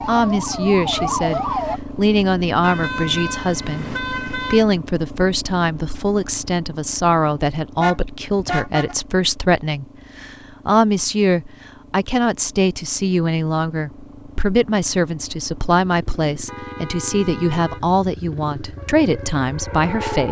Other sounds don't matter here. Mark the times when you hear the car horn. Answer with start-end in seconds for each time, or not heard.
2.6-4.7, 7.8-8.9, 16.4-17.8.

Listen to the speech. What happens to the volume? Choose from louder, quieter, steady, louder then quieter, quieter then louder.
steady.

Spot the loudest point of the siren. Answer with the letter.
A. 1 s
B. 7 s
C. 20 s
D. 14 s
A.